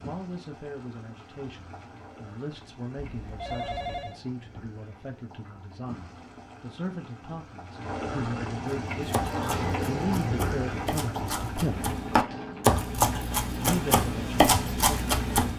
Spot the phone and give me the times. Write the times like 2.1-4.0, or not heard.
3.0-4.2.